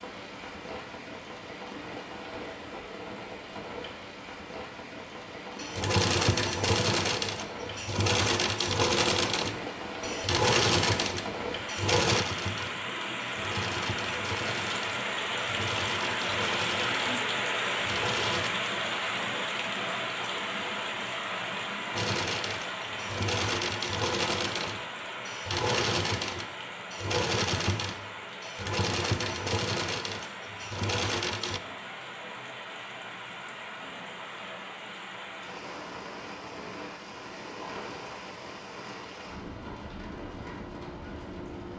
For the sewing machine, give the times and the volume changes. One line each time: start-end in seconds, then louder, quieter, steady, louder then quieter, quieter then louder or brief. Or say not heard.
5.5-18.5 quieter
21.9-31.6 steady.